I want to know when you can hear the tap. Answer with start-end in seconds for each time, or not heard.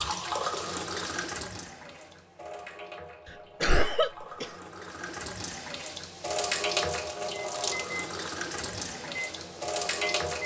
0.0-10.4.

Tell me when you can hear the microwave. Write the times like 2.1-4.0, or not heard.
7.5-10.4.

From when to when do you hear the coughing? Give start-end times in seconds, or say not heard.
3.3-4.5.